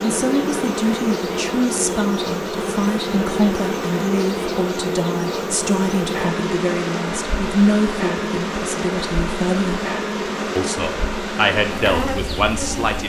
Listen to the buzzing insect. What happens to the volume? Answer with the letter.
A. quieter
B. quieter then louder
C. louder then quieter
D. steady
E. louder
D.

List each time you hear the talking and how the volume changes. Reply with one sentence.
The talking can be heard from 0.0 to 9.9 s, at a steady volume; and briefly from 10.6 to 13.0 s.